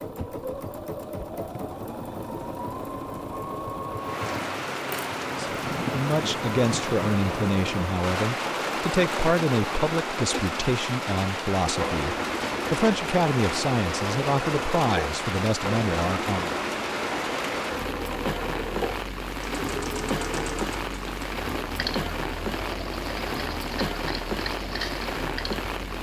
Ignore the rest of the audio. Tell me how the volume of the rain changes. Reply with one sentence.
The volume of the rain stays about the same.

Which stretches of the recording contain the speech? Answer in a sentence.
You can hear the speech from 5.2 to 16.5 s.